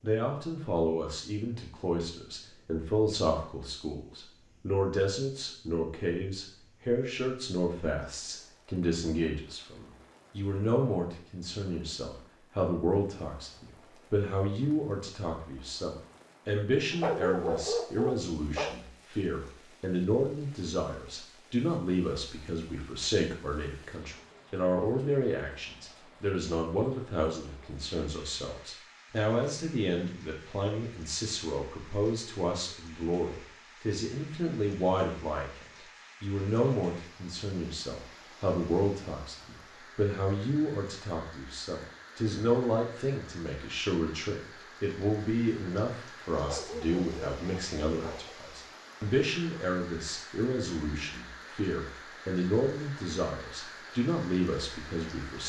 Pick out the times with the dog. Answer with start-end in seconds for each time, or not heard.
16.9-18.8, 46.4-48.4.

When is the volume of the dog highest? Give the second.
17 s.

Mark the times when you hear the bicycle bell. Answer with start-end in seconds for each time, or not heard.
not heard.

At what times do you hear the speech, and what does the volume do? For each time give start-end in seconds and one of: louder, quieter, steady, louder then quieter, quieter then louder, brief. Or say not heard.
0.0-55.4 steady.